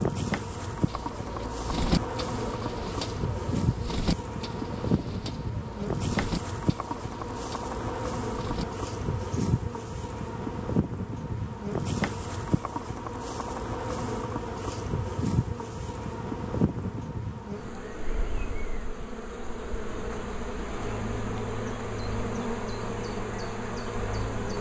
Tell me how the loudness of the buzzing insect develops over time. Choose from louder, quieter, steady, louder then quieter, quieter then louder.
steady.